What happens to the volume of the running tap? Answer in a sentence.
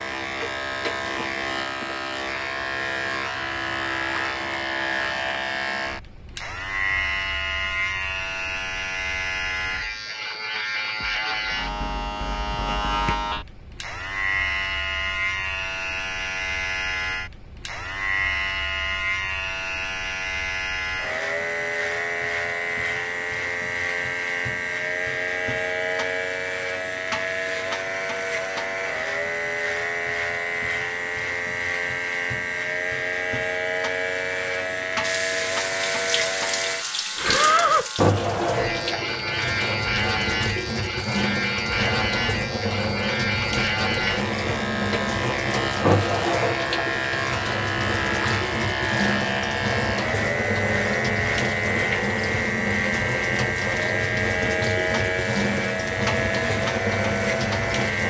The loudness of the running tap stays about the same.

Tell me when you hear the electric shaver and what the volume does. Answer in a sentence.
The electric shaver can be heard from 0.0 to 58.0 s, at a steady volume.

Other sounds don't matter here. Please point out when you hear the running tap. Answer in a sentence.
You can hear the running tap from 35.0 to 58.0 s.